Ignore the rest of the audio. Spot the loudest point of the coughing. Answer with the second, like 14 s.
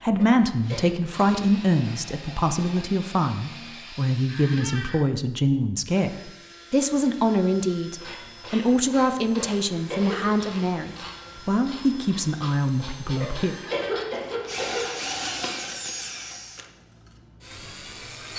14 s.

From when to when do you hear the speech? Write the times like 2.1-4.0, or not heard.
0.0-13.6.